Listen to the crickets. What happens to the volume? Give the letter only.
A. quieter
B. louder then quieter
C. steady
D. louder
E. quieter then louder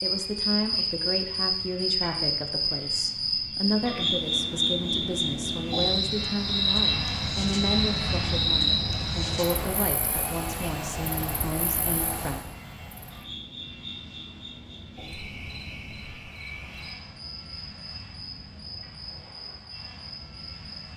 A.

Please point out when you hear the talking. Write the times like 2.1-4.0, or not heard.
0.0-12.4.